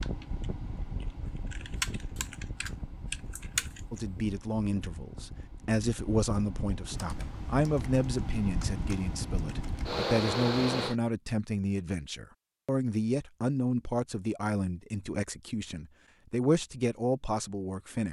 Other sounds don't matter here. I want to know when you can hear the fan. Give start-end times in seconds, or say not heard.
0.0-10.9.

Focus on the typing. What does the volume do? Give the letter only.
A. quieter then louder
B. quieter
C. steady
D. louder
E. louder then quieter
E.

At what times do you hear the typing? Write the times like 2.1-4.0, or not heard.
0.0-4.0, 6.9-9.9.